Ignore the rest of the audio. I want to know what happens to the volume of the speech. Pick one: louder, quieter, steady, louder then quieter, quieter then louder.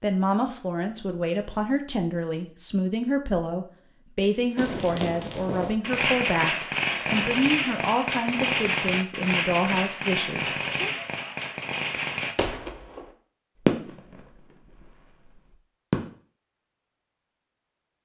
steady.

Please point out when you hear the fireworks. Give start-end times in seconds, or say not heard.
4.5-16.1.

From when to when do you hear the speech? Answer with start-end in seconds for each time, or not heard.
0.0-10.9.